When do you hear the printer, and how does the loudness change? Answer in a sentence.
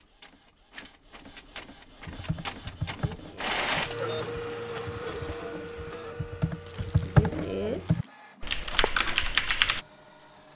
The printer can be heard from 0.0 to 10.5 s, getting louder then quieter.